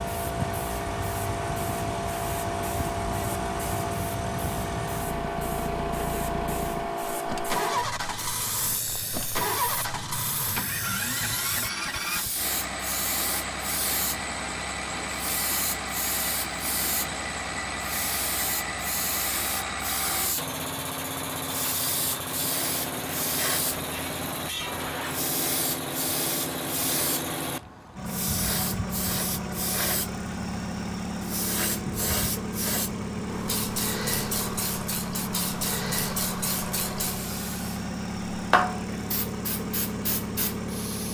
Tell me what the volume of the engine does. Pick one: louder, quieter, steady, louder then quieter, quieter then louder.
steady.